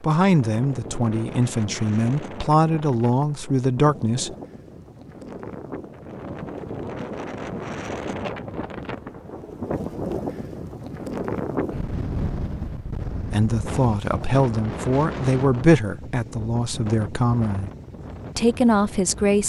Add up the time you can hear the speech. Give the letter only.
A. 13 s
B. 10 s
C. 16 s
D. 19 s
B.